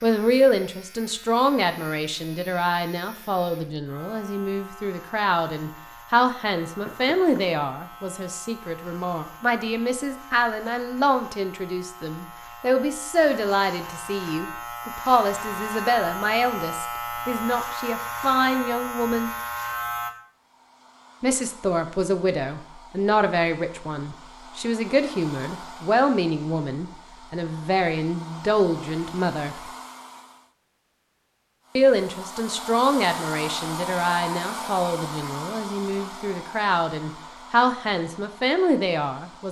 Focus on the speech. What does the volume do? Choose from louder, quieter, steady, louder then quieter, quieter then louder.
steady.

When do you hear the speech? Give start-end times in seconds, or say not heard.
0.0-19.3, 21.2-29.6, 31.8-39.4.